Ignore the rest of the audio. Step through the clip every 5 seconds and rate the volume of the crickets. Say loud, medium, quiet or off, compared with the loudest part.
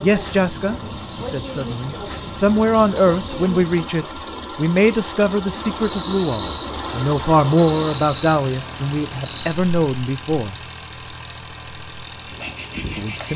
loud, loud, medium.